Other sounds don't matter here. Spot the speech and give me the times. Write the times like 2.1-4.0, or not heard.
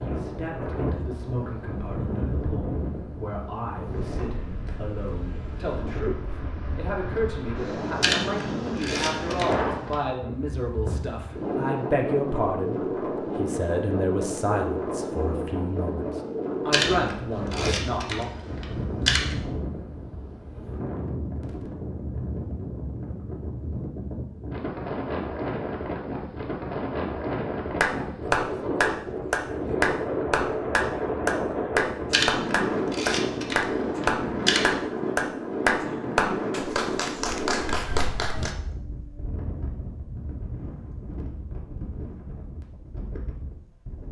0.0-18.3.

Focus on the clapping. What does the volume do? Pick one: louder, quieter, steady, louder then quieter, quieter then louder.
quieter.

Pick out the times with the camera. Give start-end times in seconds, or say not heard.
8.0-9.9, 16.7-19.4, 32.1-34.8.